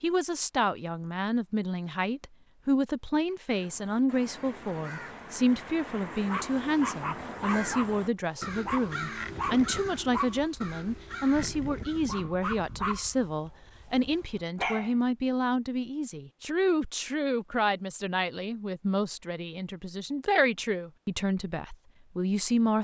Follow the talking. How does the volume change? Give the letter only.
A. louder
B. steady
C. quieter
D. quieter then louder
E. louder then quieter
B.